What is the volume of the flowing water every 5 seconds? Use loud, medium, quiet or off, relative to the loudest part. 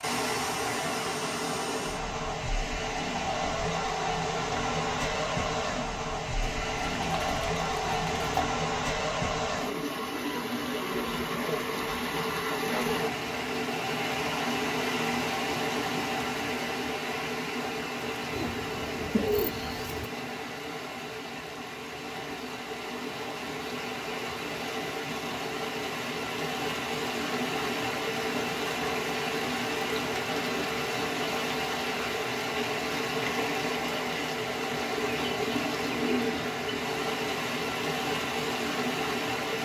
loud, loud, loud, loud, medium, loud, loud, loud.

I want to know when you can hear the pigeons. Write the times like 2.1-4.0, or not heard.
6.4-8.5, 18.3-20.1, 35.0-36.8.